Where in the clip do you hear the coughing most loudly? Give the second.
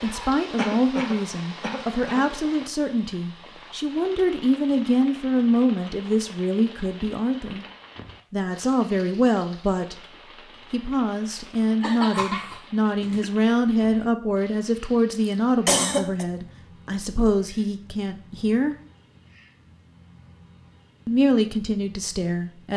16 s.